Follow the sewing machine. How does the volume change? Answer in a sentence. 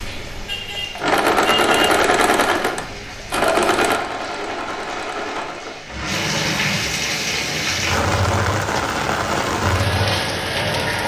The loudness of the sewing machine goes down.